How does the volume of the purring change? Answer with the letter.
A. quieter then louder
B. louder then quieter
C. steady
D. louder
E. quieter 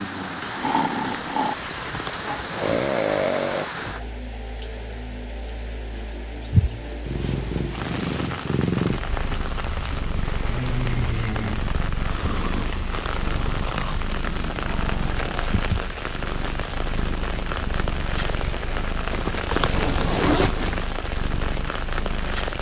E.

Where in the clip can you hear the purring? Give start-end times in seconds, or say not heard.
6.5-22.5.